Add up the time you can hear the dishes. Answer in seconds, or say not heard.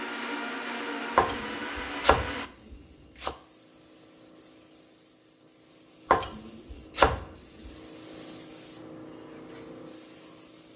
not heard.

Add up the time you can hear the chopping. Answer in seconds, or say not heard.
4 s.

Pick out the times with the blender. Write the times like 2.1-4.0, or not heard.
0.0-2.5.